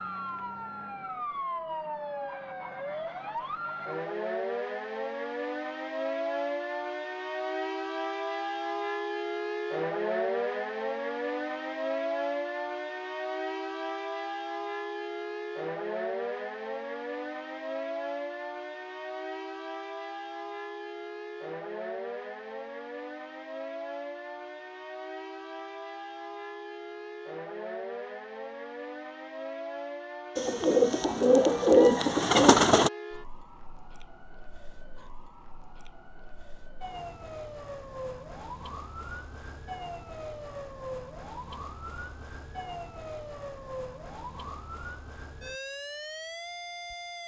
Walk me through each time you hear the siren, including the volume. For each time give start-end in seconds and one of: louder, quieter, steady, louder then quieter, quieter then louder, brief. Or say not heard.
0.0-47.2 quieter.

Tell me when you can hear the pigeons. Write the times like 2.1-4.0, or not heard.
30.4-32.9.